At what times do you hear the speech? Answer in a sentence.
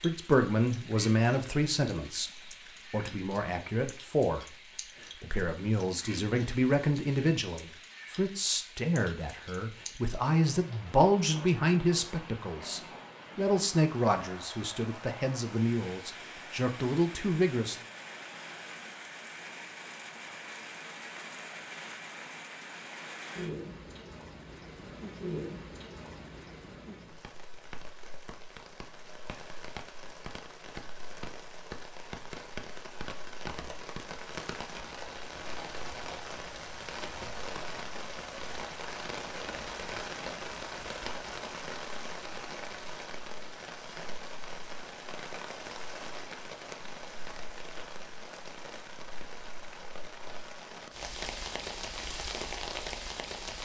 You can hear the speech from 0.0 to 17.8 s.